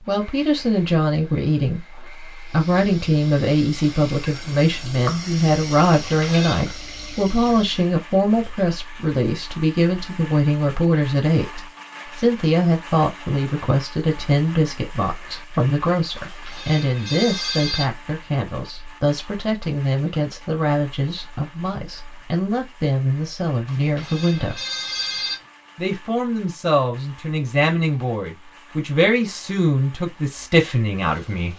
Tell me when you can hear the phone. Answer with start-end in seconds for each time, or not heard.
5.9-6.6, 16.1-17.9, 23.6-25.4.